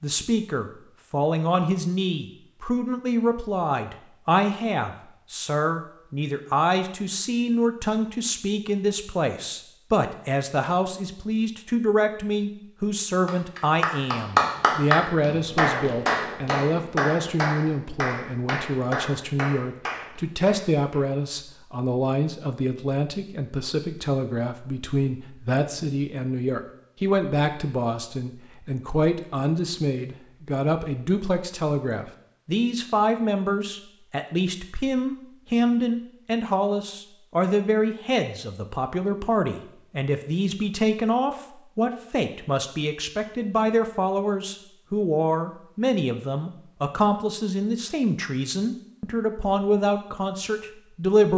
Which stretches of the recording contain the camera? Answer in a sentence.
You can't hear the camera here.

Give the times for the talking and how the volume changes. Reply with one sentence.
The talking can be heard from 0.0 to 51.3 s, at a steady volume.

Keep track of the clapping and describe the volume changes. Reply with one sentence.
The loudness of the clapping goes down.